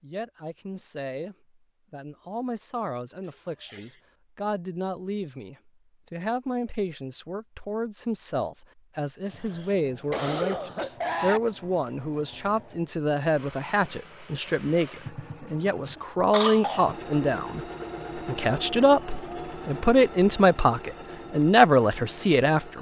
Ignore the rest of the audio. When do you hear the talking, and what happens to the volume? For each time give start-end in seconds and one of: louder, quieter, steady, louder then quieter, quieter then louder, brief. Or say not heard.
0.0-22.7 louder.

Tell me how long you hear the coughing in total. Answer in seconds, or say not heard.
3 s.